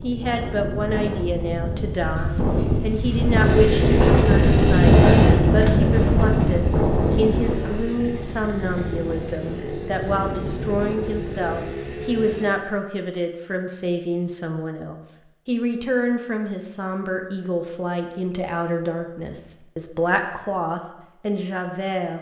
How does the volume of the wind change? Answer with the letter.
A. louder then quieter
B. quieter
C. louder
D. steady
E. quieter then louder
A.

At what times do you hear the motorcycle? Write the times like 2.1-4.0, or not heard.
3.4-12.5.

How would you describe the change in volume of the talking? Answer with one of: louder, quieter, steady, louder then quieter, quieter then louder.
steady.